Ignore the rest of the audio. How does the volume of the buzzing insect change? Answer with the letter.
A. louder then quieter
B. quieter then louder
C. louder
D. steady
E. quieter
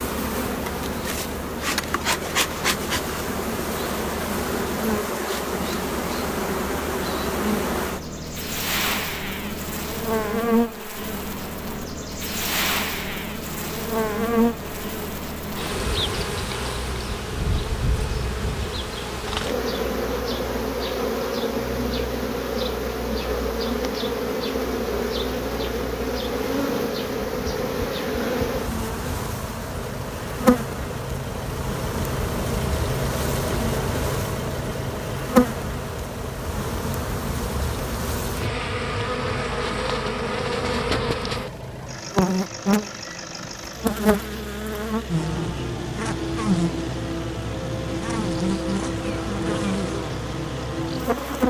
D.